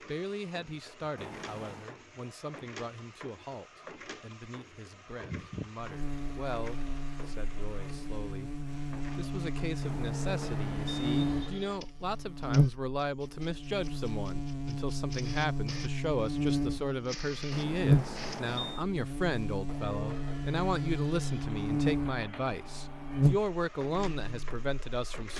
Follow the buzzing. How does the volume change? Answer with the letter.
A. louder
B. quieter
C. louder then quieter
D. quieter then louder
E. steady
A.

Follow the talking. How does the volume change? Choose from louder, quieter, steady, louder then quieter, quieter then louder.
louder.